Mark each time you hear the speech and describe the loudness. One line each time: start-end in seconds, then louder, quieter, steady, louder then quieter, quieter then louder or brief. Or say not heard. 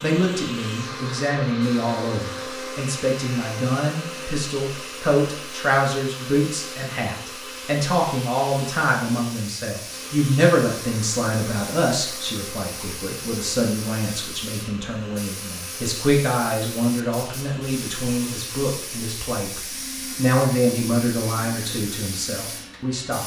0.0-23.2 steady.